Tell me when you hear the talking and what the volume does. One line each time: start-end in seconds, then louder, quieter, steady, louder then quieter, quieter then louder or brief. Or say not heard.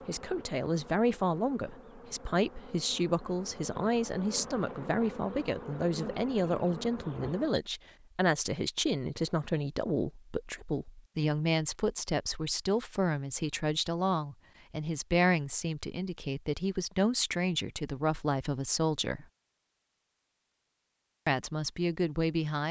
0.1-19.2 steady
21.2-22.6 brief.